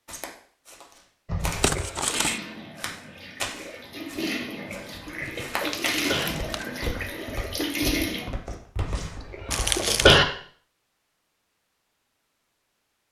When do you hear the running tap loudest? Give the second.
8 s.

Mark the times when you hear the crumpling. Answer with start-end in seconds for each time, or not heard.
1.6-2.4, 5.2-6.8, 9.5-10.2.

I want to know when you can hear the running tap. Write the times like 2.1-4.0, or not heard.
1.9-8.3.